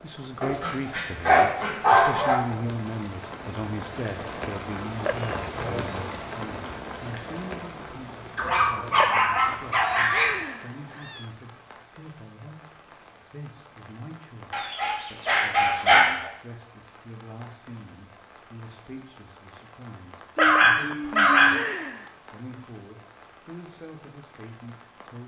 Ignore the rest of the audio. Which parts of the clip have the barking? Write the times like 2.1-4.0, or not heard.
0.4-2.4, 8.3-10.3, 14.5-16.3, 20.4-21.6.